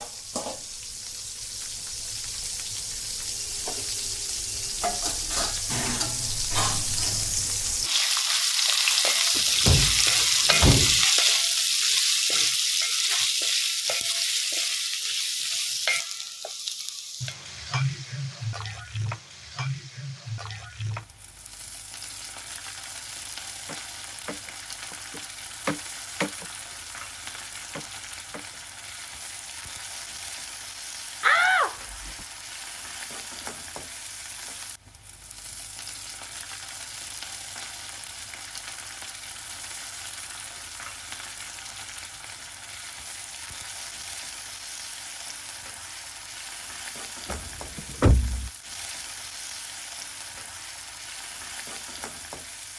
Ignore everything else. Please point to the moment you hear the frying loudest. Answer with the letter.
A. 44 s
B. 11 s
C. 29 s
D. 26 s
B.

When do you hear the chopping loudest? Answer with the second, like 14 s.
26 s.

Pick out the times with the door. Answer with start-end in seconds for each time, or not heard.
9.3-11.0, 31.2-31.7, 47.2-48.5.